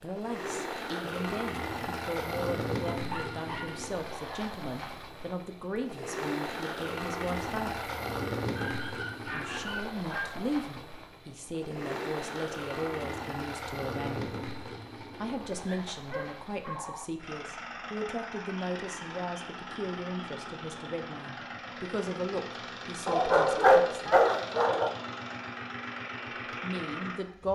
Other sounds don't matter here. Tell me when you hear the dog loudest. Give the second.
24 s.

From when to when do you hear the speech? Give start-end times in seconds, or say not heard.
0.0-7.9, 9.2-14.3, 15.2-24.2, 26.6-27.4.